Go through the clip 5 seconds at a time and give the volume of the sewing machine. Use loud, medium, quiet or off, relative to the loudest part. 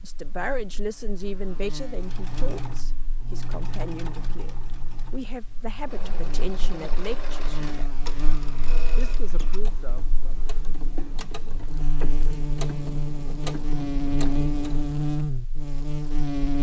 loud, loud, loud, off.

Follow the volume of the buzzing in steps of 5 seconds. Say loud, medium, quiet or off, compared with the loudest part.
quiet, quiet, loud, loud.